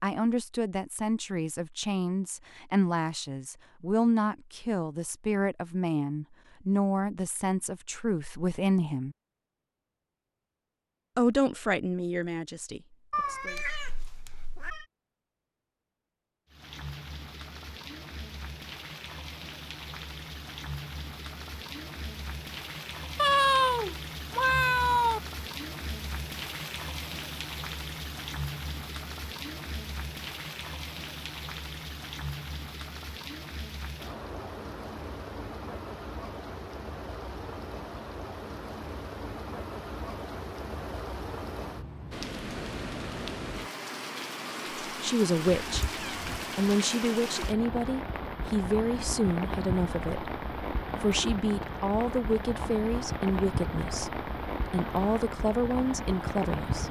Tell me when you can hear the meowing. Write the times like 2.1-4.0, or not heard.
13.1-14.8, 23.1-25.2, 45.5-46.5.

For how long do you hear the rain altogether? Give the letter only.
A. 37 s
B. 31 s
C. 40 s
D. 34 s
C.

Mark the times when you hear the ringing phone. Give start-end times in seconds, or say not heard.
not heard.